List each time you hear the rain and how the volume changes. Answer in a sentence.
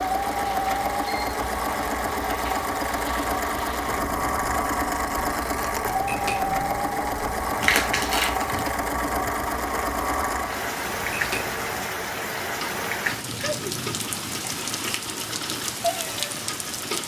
The rain can be heard from 0.0 to 17.0 s, getting louder.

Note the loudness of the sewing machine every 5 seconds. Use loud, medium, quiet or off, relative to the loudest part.
loud, loud, medium, medium.